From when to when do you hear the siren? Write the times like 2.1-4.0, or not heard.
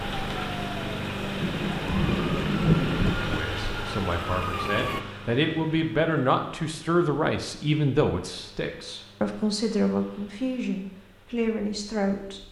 0.0-5.0.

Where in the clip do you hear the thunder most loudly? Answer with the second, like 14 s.
3 s.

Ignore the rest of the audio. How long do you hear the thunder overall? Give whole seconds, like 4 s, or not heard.
2 s.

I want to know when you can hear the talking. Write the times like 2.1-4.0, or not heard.
3.2-12.4.